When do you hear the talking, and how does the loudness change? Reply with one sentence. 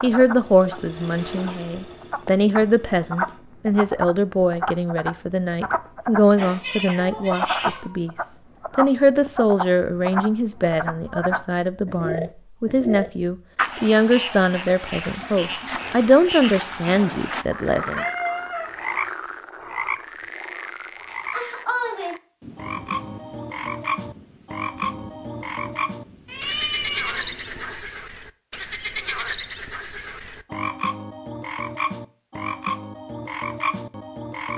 You can hear the talking from 0.0 to 18.1 s, at a steady volume.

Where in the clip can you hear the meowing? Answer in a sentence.
You can hear the meowing from 6.3 to 8.0 s, from 17.6 to 18.7 s and from 26.2 to 27.9 s.